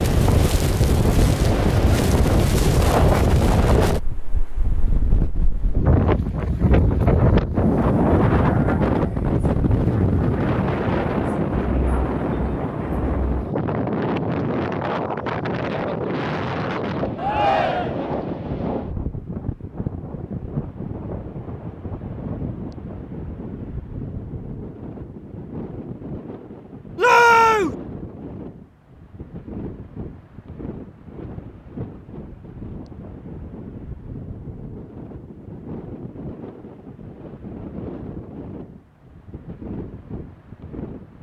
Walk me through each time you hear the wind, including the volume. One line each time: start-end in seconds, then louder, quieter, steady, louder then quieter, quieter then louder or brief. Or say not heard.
0.0-41.1 quieter.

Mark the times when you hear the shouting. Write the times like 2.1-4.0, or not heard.
17.1-18.1, 26.9-27.8.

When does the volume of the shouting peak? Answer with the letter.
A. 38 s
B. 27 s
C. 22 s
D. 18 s
B.